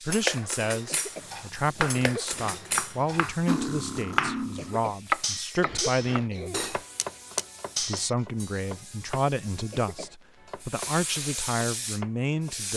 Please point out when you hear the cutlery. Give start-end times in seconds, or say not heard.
0.1-8.6.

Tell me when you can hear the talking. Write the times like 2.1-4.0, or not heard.
0.0-6.7, 7.8-12.7.